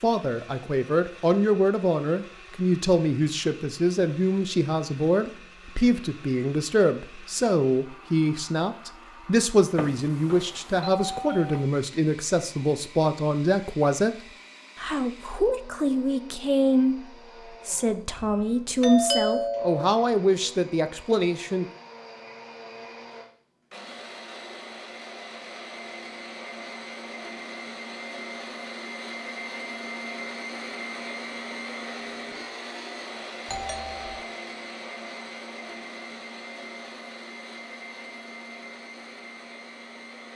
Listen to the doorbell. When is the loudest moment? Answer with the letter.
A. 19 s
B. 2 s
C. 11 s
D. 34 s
A.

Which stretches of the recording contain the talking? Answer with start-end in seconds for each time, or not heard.
0.0-21.6.